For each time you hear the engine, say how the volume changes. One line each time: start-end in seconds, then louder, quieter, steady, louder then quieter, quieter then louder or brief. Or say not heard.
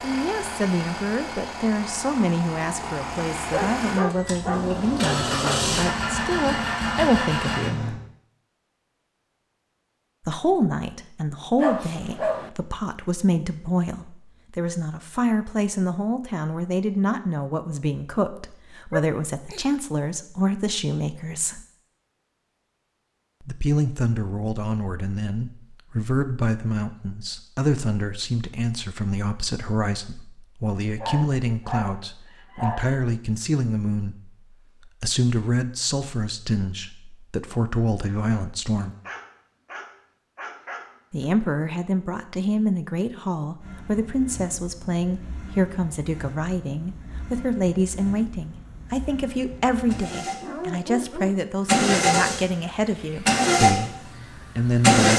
0.0-8.0 louder
43.6-55.1 louder.